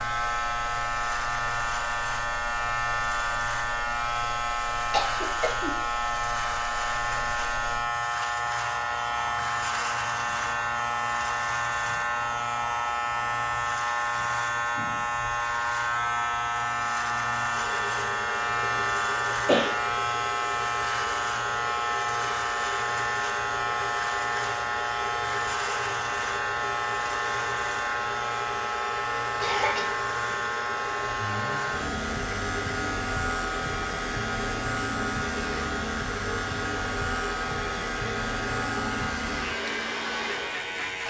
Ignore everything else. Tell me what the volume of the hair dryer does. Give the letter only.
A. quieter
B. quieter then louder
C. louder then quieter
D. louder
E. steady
D.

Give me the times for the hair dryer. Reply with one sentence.
You can hear the hair dryer from 0.0 to 41.0 s.